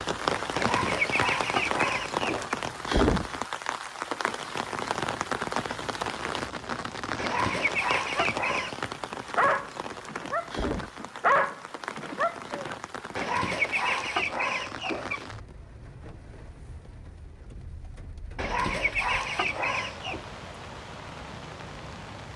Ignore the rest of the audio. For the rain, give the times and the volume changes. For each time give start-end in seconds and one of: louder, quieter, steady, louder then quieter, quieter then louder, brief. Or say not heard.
0.0-22.3 quieter.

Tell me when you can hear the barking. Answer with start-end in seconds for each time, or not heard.
8.0-12.8.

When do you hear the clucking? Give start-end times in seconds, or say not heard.
0.6-2.5, 7.2-8.8, 13.2-15.2, 18.4-20.2.